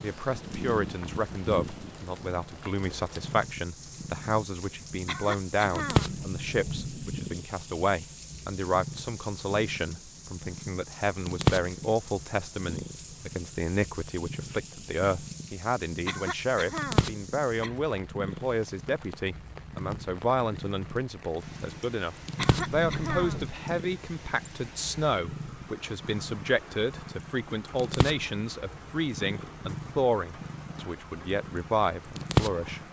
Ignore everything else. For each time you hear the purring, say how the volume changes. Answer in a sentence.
You can hear the purring from 0.0 to 32.8 s, getting quieter then louder.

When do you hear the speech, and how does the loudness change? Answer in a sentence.
The speech can be heard from 0.0 to 32.8 s, at a steady volume.